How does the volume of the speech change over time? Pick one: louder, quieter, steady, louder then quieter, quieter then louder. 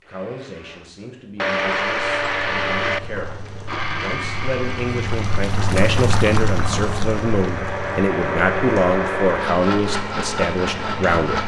louder.